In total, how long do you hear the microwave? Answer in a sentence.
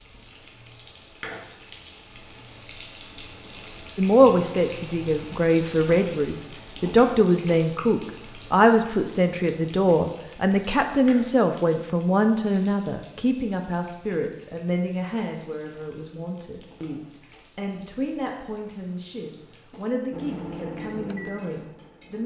The microwave can be heard for 2 seconds in total.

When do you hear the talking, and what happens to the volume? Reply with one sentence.
The talking can be heard from 4.0 to 22.2 s, getting quieter.